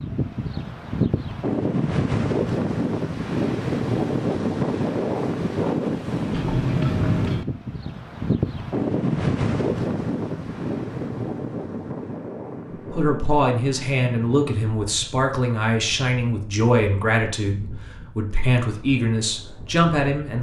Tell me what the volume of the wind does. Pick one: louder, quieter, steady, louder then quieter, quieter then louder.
quieter.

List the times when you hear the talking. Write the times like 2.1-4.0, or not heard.
12.9-20.3.